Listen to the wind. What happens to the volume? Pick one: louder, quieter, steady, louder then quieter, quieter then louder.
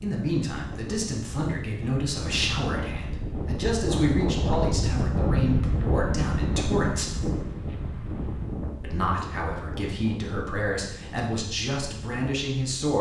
louder then quieter.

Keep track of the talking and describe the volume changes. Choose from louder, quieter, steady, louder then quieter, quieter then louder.
steady.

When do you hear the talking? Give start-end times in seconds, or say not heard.
0.0-7.2, 8.8-12.9.